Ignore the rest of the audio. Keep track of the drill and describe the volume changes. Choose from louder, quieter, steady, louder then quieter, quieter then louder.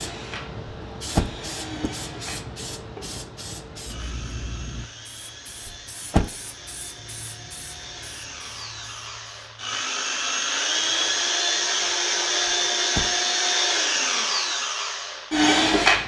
louder.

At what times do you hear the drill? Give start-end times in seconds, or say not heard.
0.0-16.0.